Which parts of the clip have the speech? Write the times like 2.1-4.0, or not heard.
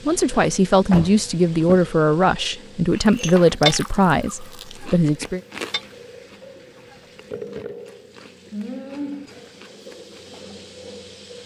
0.1-5.4.